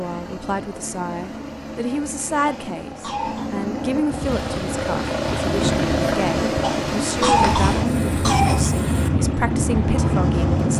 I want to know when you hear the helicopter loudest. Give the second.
6 s.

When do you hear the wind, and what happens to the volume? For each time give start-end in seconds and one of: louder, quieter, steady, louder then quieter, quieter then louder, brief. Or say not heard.
4.0-10.7 louder.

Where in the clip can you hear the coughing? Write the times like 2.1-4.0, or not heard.
2.5-3.5, 6.6-8.7.